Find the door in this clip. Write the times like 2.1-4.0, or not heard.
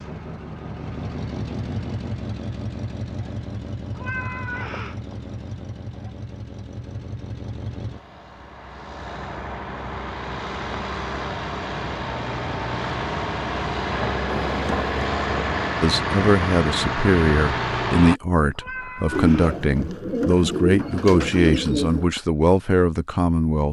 14.3-14.9.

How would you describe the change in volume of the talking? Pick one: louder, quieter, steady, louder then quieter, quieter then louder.
steady.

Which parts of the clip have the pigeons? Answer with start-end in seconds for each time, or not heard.
19.1-22.1.